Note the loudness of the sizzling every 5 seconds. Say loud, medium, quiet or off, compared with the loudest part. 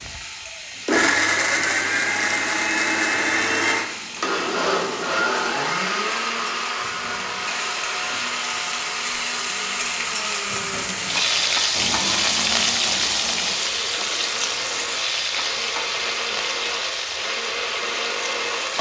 quiet, medium, loud, medium.